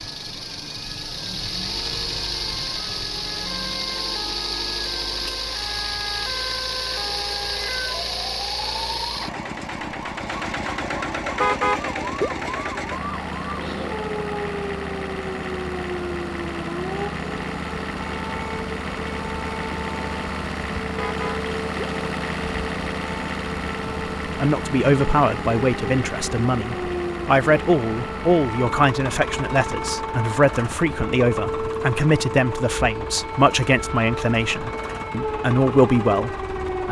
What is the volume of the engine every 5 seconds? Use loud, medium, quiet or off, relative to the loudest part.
loud, loud, loud, loud, loud, loud, medium, medium.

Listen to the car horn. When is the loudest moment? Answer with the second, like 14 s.
12 s.